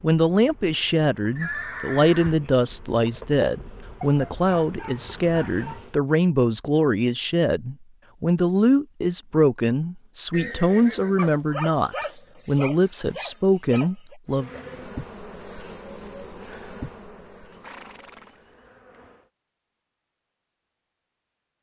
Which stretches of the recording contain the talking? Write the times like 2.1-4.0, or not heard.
0.0-14.6.